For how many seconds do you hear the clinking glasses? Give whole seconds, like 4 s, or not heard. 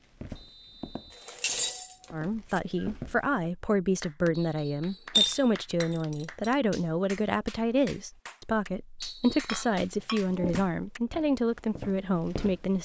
4 s.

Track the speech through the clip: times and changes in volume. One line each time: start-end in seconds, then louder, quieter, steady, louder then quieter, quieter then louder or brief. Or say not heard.
2.1-12.7 steady.